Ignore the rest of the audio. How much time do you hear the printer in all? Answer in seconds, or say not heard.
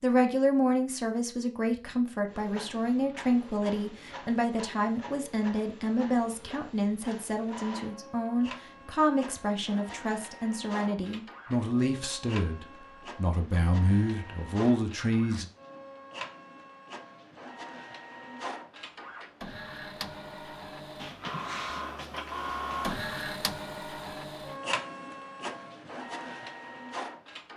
25 s.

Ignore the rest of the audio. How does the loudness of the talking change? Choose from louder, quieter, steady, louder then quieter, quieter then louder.
steady.